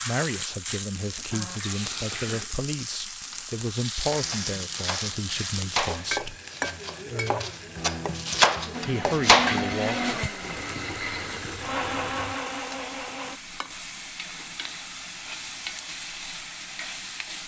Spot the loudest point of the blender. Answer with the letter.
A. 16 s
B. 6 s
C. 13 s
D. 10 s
D.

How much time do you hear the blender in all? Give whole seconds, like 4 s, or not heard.
5 s.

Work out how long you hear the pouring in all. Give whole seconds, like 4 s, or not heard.
3 s.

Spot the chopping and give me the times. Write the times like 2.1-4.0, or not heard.
4.0-9.7.